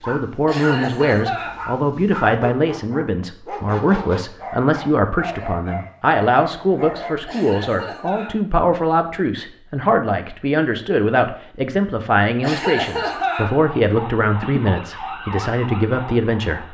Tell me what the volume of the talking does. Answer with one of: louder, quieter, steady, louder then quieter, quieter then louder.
steady.